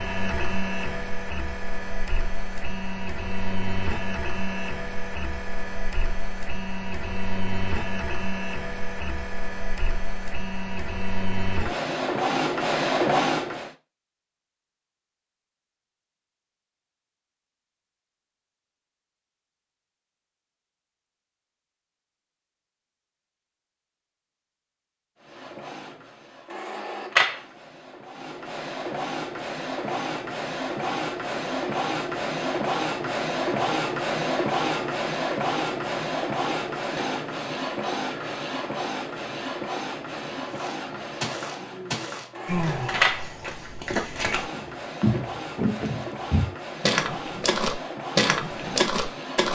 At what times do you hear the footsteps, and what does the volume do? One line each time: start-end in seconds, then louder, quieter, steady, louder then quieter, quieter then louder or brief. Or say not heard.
40.5-49.5 louder.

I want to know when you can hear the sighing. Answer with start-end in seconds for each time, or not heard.
41.6-43.2.